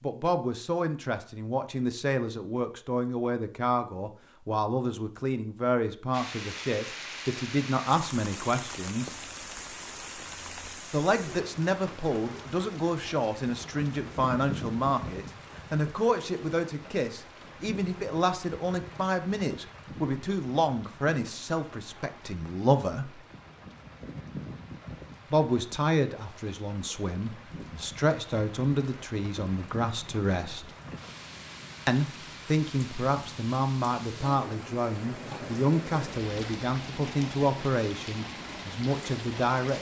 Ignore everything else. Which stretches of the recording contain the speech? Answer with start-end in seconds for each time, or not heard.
0.0-9.1, 10.9-23.2, 25.3-30.7, 31.9-39.7.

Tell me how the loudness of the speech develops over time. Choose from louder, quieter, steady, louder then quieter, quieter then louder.
steady.